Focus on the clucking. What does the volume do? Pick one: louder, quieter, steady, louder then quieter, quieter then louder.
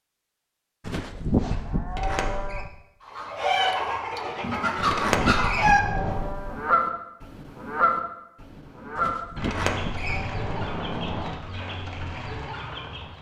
quieter.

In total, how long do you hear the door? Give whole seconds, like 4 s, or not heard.
4 s.